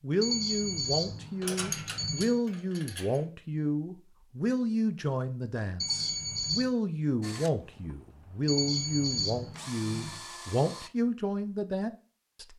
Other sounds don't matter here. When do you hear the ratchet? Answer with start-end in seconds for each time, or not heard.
1.4-3.2.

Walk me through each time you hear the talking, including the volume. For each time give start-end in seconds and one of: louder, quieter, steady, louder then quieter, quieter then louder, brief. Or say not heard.
0.0-12.5 steady.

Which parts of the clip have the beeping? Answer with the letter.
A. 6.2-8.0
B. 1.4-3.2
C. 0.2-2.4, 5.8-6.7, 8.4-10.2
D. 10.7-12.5
C.